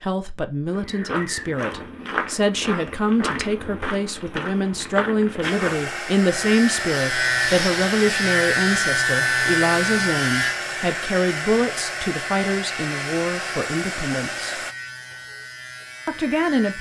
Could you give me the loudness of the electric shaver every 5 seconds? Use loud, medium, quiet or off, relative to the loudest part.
off, loud, medium, quiet.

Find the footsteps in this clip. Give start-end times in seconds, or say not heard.
0.7-5.9.